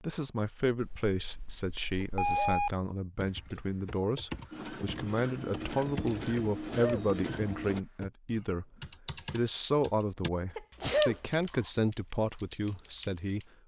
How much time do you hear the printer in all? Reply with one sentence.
The printer can be heard for 3 seconds in total.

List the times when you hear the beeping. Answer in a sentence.
You can hear the beeping from 0.8 to 2.8 s.